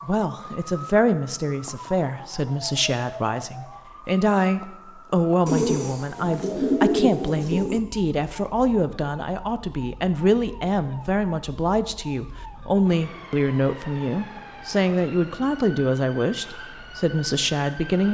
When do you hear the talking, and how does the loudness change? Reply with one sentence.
The talking can be heard from 0.0 to 18.0 s, at a steady volume.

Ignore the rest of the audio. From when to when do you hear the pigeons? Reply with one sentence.
You can hear the pigeons from 5.5 to 7.8 s.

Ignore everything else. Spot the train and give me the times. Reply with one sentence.
The train can't be heard in this clip.